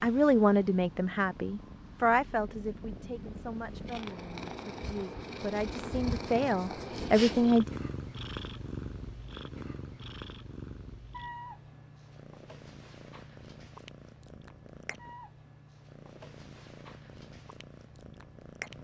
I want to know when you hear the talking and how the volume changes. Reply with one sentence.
You can hear the talking from 0.0 to 7.7 s, getting quieter then louder.